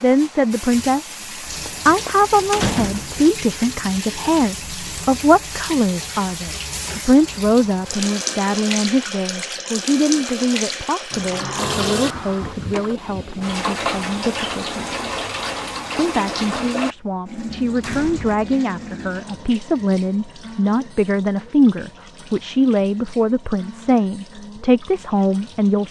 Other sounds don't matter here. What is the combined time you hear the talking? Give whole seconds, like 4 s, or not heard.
24 s.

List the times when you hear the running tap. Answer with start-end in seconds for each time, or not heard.
0.0-25.8.